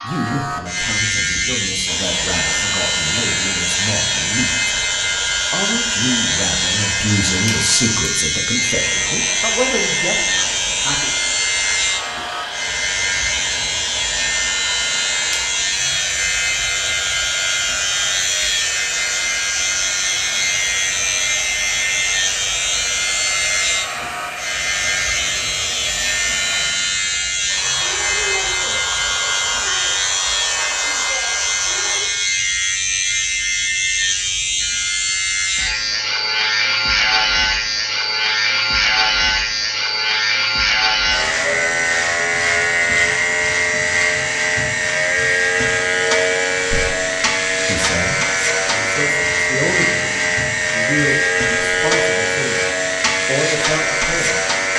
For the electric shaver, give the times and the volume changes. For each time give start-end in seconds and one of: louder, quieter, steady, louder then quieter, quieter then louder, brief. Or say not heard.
0.0-54.7 steady.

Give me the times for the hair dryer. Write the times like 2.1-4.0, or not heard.
1.9-32.0.